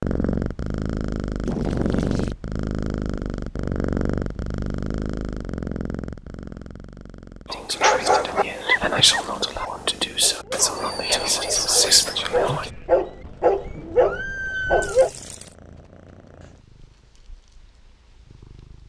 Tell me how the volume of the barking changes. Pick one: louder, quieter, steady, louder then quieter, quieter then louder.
quieter then louder.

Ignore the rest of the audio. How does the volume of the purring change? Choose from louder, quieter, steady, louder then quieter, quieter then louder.
quieter.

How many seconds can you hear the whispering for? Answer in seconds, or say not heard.
5 s.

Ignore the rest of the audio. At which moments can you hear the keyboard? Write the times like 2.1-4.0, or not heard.
not heard.